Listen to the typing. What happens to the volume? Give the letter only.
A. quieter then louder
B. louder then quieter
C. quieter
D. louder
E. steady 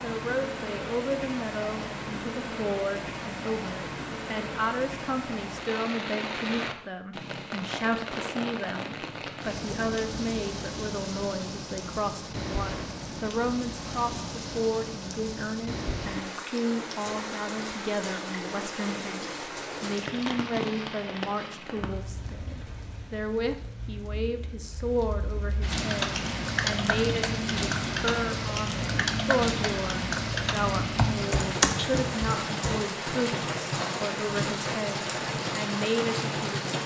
D.